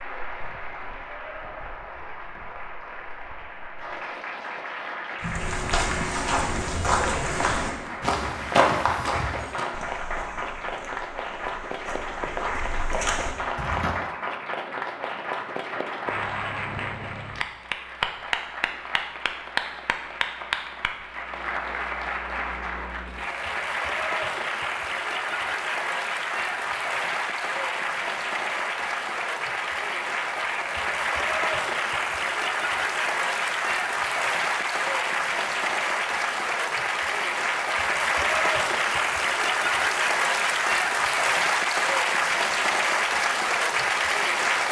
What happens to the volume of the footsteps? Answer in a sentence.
The loudness of the footsteps goes down, then up.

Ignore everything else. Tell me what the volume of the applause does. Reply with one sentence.
The volume of the applause goes up.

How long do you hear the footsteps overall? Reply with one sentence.
The footsteps can be heard for 9 seconds in total.